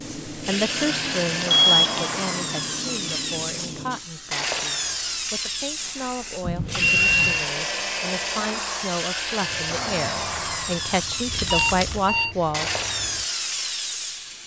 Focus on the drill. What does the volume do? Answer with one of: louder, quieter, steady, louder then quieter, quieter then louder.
steady.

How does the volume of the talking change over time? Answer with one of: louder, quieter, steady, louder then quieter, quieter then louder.
quieter then louder.